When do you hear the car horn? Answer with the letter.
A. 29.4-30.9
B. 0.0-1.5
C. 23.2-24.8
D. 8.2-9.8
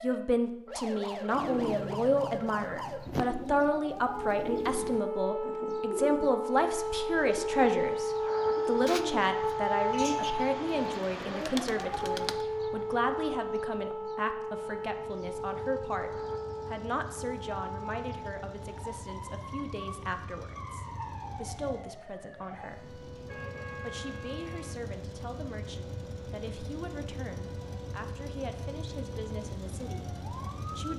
C.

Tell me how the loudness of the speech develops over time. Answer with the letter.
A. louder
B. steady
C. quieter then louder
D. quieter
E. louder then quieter
D.